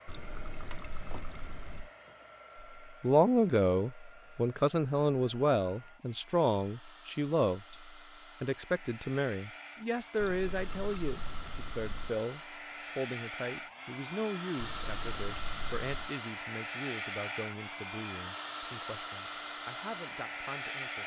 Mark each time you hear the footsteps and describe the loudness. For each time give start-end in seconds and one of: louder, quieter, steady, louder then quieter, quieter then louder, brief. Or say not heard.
not heard.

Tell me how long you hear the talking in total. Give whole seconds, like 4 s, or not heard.
18 s.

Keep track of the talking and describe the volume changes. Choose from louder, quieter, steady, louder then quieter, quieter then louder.
quieter.